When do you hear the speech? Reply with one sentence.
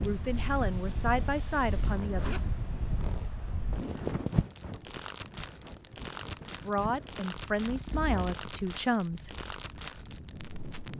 The speech can be heard from 0.0 to 2.4 s and from 6.5 to 9.4 s.